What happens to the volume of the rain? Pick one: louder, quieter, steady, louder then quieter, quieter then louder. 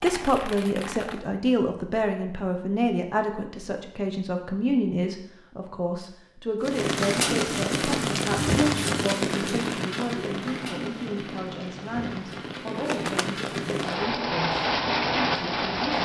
quieter then louder.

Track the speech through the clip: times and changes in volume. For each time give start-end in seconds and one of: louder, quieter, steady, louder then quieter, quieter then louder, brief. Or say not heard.
0.0-15.9 quieter.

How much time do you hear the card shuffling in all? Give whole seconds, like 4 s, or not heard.
2 s.